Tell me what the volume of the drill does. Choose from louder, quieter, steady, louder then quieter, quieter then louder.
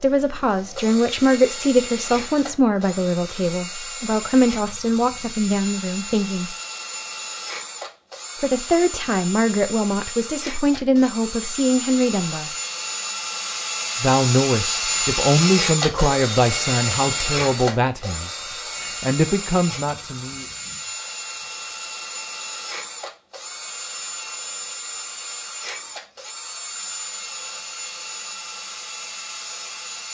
louder then quieter.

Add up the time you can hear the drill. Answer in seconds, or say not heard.
30 s.